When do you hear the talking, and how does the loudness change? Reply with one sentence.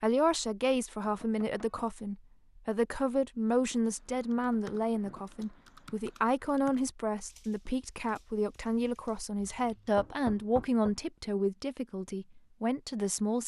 The talking can be heard from 0.0 to 13.4 s, at a steady volume.